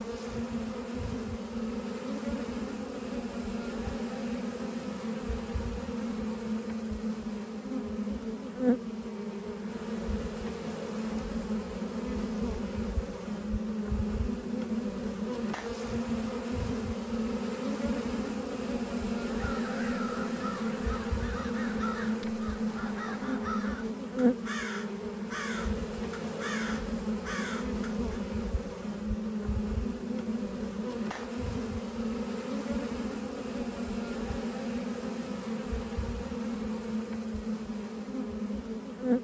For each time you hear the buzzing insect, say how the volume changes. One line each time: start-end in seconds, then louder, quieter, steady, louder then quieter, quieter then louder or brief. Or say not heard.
0.0-39.1 steady.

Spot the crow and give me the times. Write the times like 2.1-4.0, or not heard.
19.4-28.2.